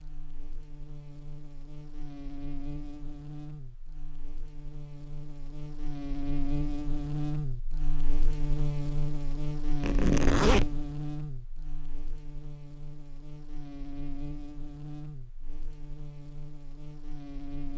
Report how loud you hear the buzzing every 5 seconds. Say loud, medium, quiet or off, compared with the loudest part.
medium, loud, loud, medium.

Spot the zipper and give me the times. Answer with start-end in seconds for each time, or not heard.
9.8-10.8.